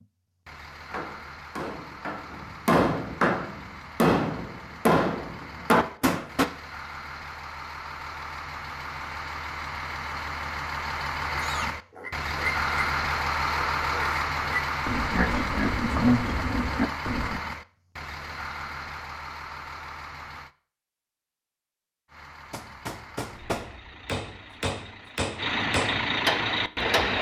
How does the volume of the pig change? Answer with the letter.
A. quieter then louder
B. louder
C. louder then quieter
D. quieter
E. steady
B.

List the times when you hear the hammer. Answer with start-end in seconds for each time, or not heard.
0.9-6.5, 22.5-27.1.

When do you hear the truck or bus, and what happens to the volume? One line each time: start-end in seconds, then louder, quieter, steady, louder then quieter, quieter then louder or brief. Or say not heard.
0.0-20.5 louder then quieter
22.1-27.1 louder.